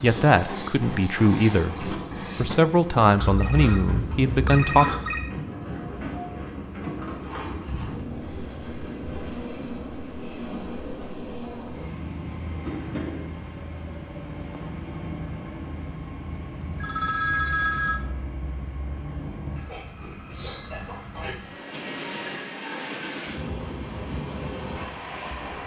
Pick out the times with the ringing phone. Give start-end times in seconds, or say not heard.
3.2-5.2, 16.8-18.0.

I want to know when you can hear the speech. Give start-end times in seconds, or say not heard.
0.0-4.9.